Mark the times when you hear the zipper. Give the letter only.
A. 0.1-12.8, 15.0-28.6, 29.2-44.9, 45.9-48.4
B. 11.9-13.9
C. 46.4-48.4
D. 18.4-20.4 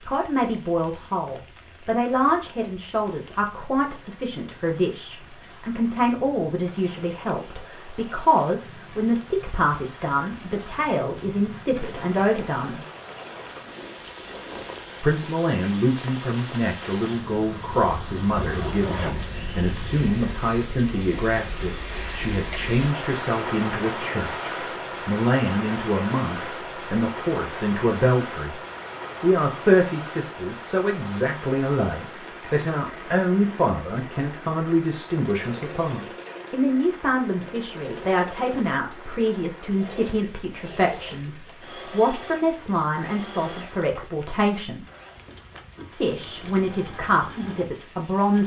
D.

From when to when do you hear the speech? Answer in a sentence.
The speech can be heard from 0.1 to 12.8 s, from 15.0 to 28.6 s, from 29.2 to 44.9 s and from 45.9 to 48.4 s.